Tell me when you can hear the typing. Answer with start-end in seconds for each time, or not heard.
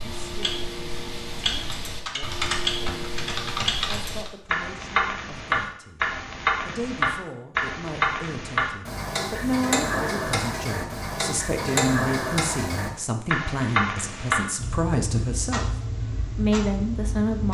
1.5-4.3.